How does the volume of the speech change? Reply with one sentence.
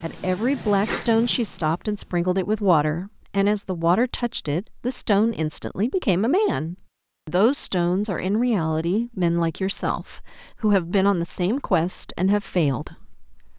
The loudness of the speech stays about the same.